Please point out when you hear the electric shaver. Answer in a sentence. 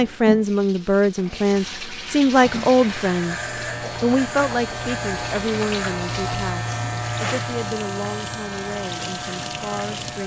The electric shaver can be heard from 2.3 to 10.2 s.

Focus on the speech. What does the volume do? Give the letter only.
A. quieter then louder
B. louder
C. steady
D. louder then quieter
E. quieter
E.